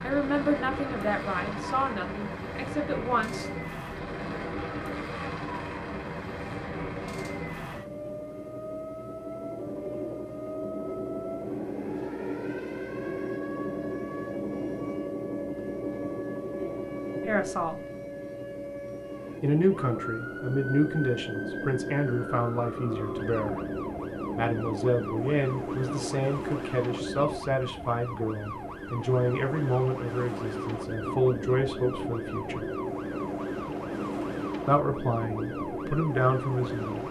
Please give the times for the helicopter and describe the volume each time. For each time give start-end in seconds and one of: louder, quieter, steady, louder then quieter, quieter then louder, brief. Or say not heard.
0.0-37.0 steady.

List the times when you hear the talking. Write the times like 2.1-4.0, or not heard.
0.0-3.5, 17.2-17.8, 19.4-23.6, 24.4-32.6, 34.6-37.0.